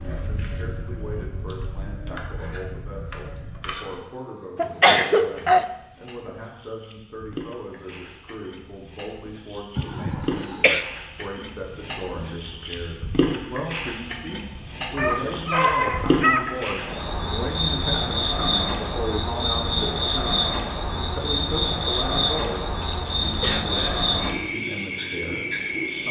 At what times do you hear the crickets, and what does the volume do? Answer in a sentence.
The crickets can be heard from 0.0 to 26.0 s, getting louder.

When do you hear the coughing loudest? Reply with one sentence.
The loudest moment of the coughing is at 5 seconds.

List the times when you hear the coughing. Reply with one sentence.
You can hear the coughing from 4.5 to 5.7 s, from 9.8 to 10.8 s and from 22.8 to 24.2 s.